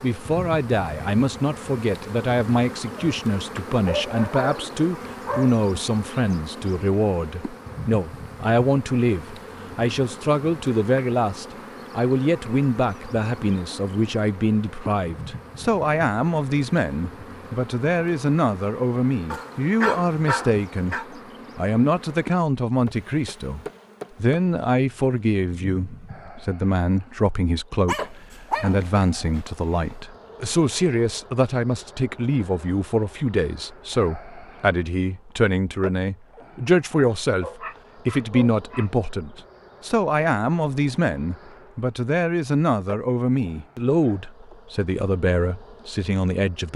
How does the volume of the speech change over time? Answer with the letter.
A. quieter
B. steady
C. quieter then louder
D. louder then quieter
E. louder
B.